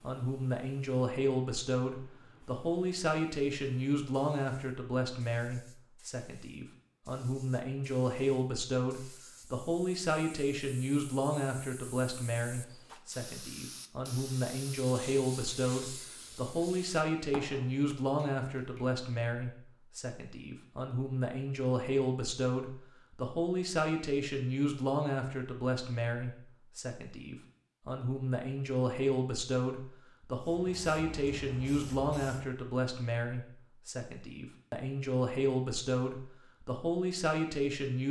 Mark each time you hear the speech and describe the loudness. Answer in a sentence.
The speech can be heard from 0.0 to 38.0 s, at a steady volume.